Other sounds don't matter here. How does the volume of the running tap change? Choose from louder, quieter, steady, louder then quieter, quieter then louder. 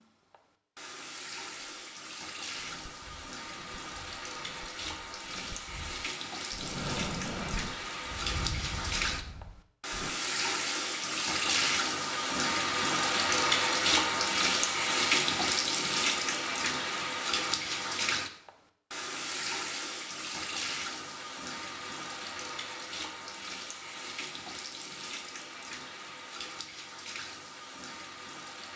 louder then quieter.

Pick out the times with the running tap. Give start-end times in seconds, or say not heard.
0.0-28.7.